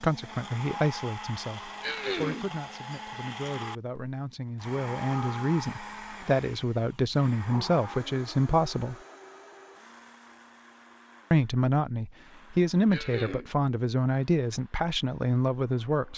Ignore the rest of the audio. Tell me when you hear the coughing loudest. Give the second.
2 s.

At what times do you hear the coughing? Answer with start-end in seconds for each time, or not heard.
1.8-2.5, 12.9-13.5.